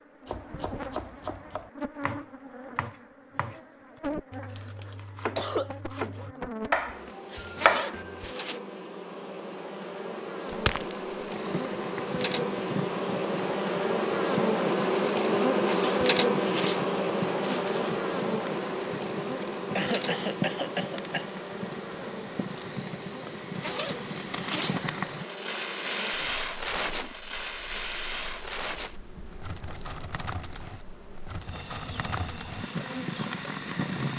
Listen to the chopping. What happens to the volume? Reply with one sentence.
The volume of the chopping goes down, then up.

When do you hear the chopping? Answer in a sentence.
You can hear the chopping from 0.2 to 8.3 s.